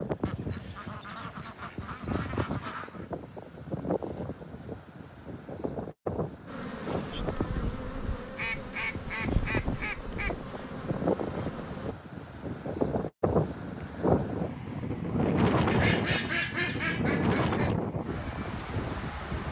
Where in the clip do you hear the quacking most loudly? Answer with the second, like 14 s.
16 s.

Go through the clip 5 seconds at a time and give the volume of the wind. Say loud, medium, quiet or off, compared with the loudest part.
medium, medium, loud, loud.